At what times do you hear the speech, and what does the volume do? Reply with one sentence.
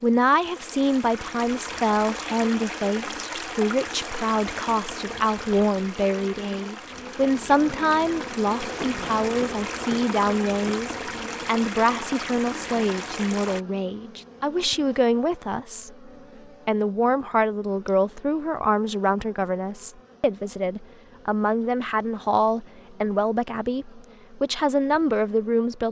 You can hear the speech from 0.0 to 25.8 s, at a steady volume.